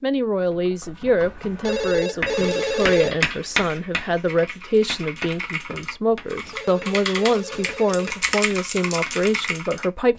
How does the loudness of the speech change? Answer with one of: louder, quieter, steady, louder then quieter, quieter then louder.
steady.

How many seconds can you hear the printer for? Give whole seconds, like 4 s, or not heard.
not heard.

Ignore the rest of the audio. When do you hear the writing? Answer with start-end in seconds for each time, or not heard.
2.2-9.2.